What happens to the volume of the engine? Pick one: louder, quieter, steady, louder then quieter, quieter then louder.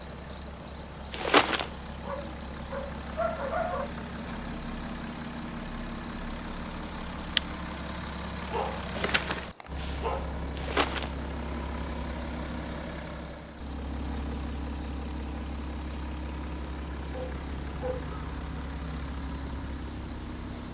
steady.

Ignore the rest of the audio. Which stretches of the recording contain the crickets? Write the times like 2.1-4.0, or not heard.
0.0-16.1.